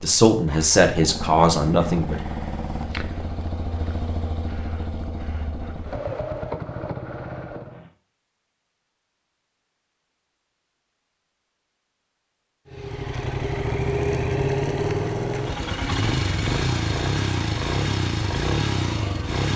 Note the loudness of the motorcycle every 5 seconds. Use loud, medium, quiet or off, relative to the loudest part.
medium, medium, loud, loud.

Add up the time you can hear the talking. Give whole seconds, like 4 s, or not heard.
2 s.